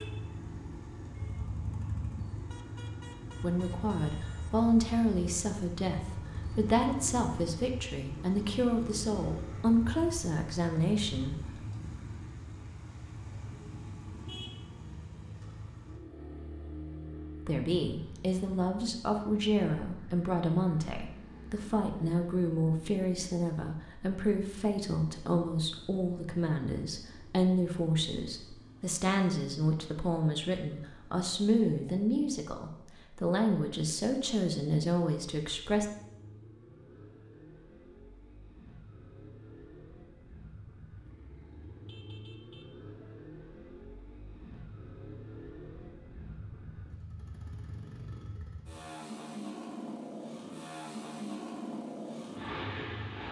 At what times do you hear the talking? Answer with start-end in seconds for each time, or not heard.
3.4-11.6, 17.4-35.9.